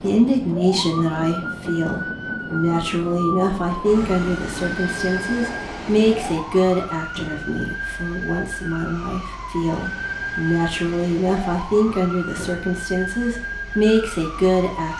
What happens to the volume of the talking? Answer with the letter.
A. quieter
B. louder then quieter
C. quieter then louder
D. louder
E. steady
E.